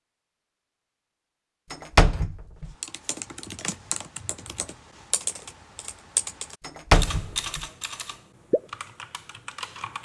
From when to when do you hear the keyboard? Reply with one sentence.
You can hear the keyboard from 2.8 to 9.9 s.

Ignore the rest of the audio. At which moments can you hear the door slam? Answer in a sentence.
The door slam can be heard from 1.7 to 2.7 s and from 6.7 to 7.7 s.